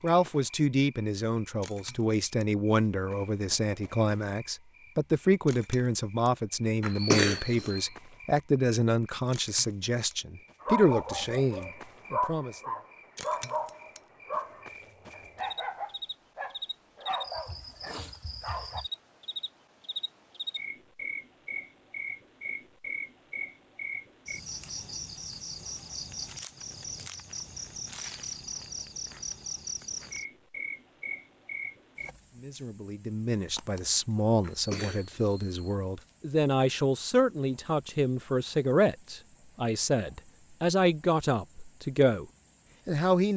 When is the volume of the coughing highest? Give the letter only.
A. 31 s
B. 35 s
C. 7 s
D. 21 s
C.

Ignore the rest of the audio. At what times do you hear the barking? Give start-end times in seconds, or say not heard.
10.6-18.9.